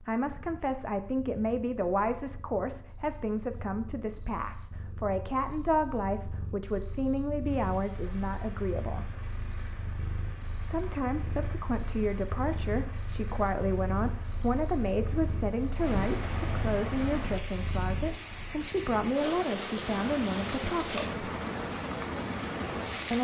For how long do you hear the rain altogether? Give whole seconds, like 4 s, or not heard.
16 s.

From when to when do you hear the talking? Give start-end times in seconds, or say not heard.
0.0-9.2, 10.5-21.2.